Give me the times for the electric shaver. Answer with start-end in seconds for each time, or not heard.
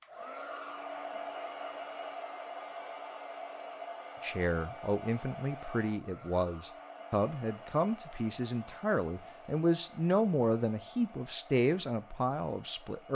not heard.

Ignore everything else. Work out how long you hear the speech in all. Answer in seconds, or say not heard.
9 s.